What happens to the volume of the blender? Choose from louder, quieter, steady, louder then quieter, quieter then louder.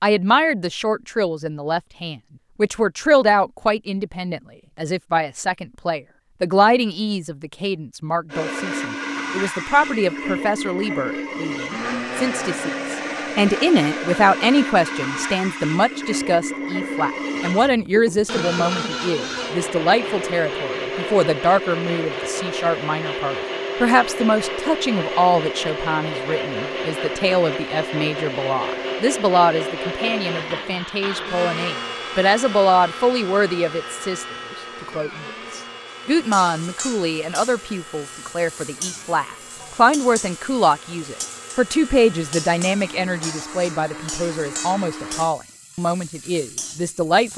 quieter.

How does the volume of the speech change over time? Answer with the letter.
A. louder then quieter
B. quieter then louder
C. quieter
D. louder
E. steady
E.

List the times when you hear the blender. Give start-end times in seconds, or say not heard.
8.3-45.3.